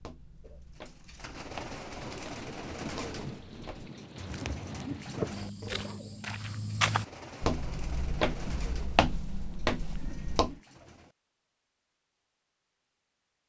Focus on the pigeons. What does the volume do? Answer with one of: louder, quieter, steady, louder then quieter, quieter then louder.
quieter.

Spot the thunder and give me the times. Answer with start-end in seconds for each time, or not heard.
1.9-5.3.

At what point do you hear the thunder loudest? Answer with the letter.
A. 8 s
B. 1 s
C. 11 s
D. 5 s
D.